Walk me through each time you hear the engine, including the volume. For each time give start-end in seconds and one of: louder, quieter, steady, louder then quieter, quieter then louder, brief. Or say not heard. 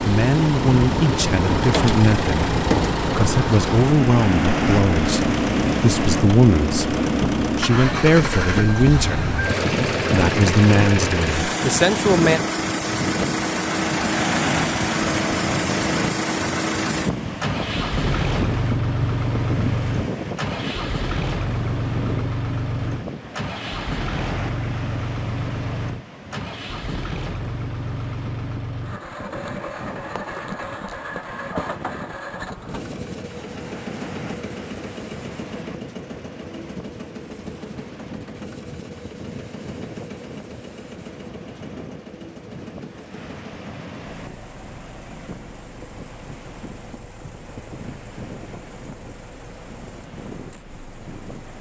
0.0-51.5 quieter.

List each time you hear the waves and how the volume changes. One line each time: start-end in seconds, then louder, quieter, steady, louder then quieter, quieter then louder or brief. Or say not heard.
0.0-51.5 quieter.